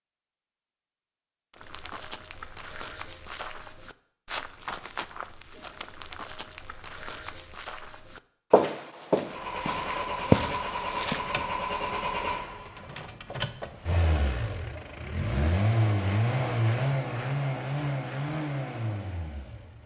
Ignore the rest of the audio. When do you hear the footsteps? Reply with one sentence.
You can hear the footsteps from 1.5 to 11.2 s.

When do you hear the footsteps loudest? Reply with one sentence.
The volume of the footsteps peaks at 10 seconds.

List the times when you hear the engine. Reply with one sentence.
You can hear the engine from 9.2 to 19.8 s.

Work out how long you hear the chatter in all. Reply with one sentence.
The chatter can't be heard in this clip.